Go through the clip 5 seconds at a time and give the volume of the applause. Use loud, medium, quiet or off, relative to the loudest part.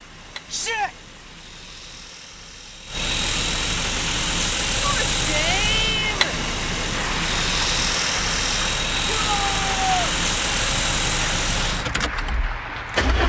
off, loud, loud.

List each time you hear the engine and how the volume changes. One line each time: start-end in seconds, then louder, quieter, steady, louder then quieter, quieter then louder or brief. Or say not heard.
0.0-13.2 louder.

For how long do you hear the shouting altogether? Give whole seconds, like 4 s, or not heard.
3 s.